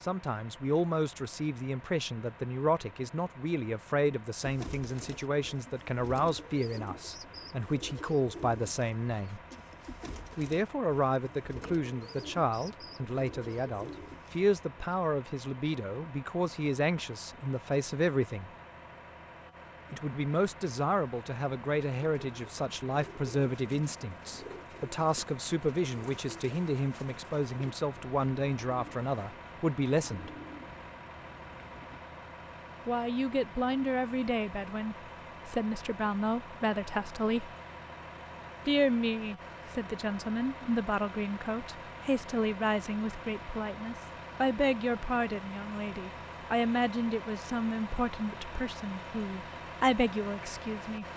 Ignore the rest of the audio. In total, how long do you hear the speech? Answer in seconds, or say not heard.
45 s.